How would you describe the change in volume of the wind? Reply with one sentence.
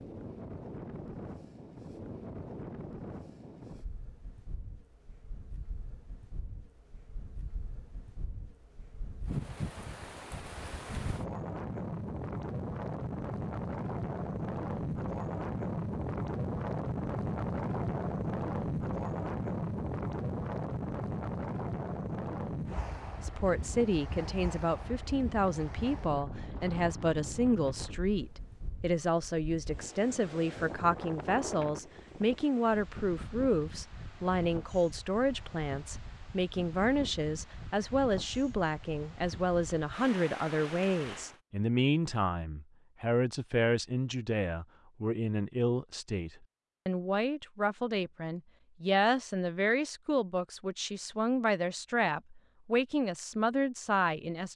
The volume of the wind goes up, then down.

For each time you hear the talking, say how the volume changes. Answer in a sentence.
The talking can be heard from 23.2 to 54.5 s, at a steady volume.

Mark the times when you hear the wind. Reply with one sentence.
You can hear the wind from 0.0 to 41.4 s.